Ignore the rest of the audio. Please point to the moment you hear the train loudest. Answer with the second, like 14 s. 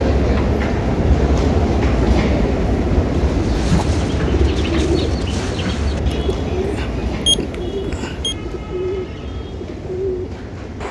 2 s.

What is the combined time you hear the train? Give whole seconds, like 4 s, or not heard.
11 s.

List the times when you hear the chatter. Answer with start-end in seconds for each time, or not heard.
not heard.